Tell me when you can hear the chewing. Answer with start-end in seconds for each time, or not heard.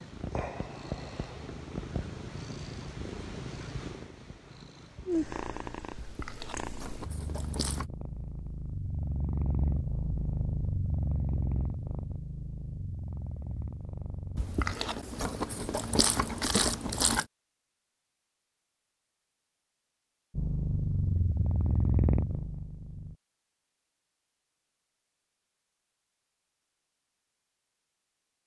6.0-7.8, 14.3-17.2.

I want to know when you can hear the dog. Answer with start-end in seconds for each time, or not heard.
not heard.